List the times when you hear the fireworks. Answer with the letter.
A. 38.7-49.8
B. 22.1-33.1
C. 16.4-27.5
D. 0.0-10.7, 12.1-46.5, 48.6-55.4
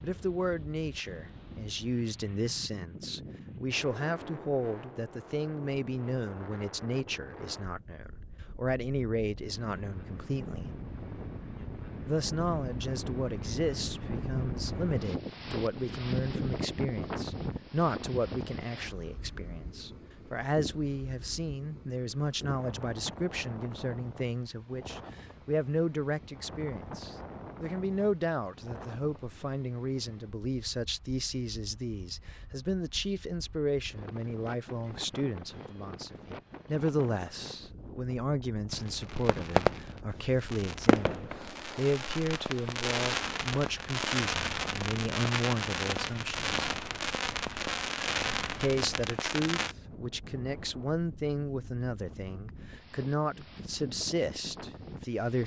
A.